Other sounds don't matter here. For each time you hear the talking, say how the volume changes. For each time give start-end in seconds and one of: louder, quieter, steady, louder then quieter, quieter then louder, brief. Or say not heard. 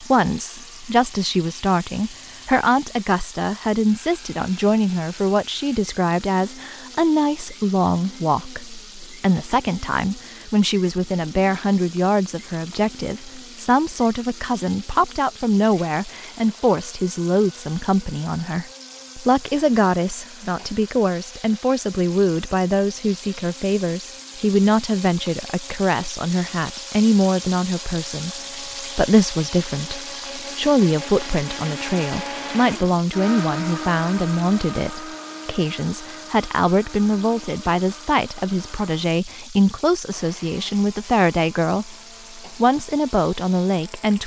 0.0-44.2 steady.